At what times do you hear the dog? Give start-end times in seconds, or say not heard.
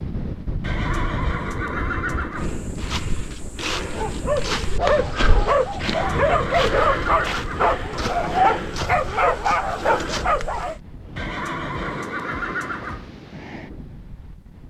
4.0-10.8.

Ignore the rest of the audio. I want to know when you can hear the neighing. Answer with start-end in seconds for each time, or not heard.
0.6-2.6, 5.8-7.8, 11.2-13.1.